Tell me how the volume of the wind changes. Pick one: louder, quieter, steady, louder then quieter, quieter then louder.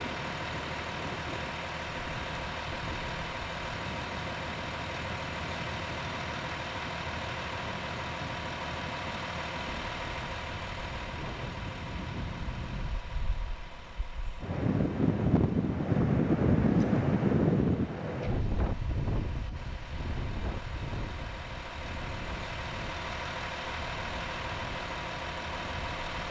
louder then quieter.